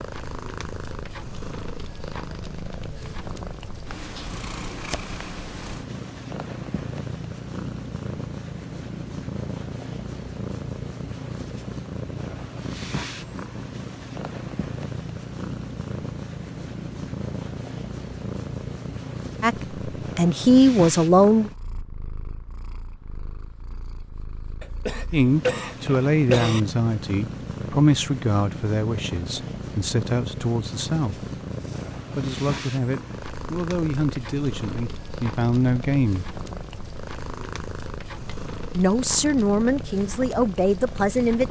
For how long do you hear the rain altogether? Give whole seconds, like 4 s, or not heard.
not heard.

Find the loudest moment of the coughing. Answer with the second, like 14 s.
26 s.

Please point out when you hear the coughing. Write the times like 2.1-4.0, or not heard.
24.6-26.6.